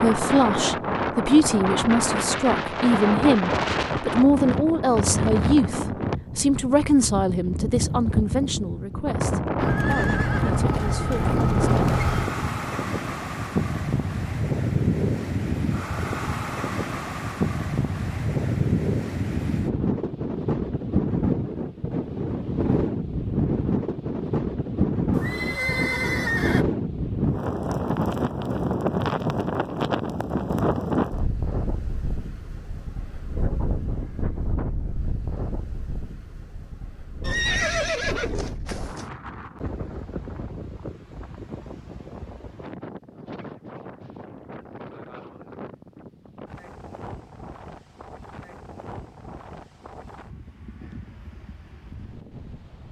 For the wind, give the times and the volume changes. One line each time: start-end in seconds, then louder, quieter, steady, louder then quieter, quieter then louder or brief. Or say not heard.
0.0-52.8 quieter.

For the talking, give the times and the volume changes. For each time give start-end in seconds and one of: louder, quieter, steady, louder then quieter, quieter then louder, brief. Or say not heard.
0.0-11.8 quieter.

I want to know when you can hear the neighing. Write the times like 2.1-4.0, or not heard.
9.6-12.3, 25.1-26.6, 37.2-39.0.